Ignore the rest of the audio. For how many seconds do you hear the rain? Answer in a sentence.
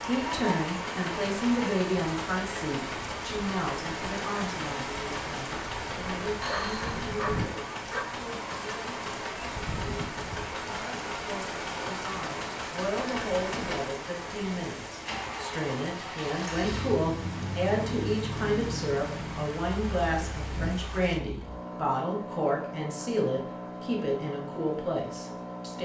You can hear the rain for 21 seconds altogether.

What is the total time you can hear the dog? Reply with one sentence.
You can hear the dog for 2 seconds altogether.